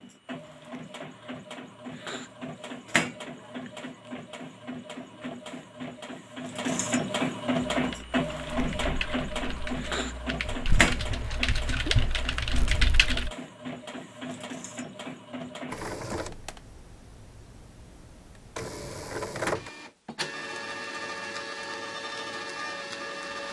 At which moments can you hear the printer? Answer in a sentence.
The printer can be heard from 0.0 to 23.4 s.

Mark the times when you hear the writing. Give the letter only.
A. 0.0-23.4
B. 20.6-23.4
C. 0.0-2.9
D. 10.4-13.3
D.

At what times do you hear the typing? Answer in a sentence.
The typing can be heard from 7.7 to 13.3 s.